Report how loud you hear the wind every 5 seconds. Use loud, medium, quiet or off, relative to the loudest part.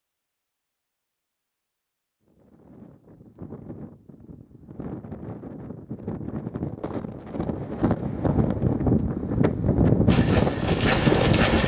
quiet, medium, loud.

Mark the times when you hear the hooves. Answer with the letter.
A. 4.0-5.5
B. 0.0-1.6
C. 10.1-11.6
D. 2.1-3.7
C.